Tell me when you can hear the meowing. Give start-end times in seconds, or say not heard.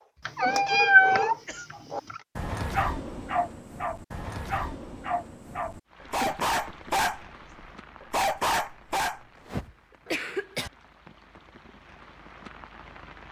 0.2-2.2.